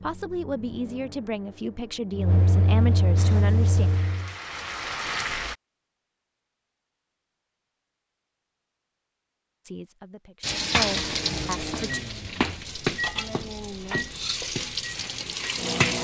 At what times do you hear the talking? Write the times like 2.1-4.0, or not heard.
0.0-3.9, 9.7-12.0.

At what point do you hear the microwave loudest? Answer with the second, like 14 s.
3 s.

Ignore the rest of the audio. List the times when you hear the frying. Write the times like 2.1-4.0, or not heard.
3.1-5.5, 10.4-15.9.